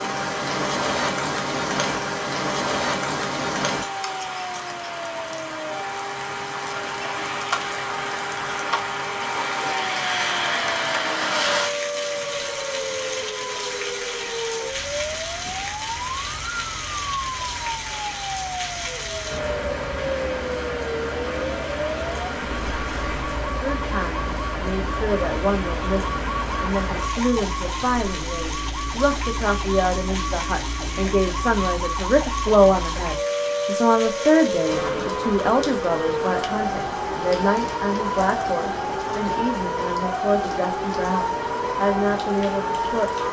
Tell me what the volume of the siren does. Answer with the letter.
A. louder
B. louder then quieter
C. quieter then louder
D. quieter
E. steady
A.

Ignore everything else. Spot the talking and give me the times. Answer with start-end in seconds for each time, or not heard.
23.6-43.1.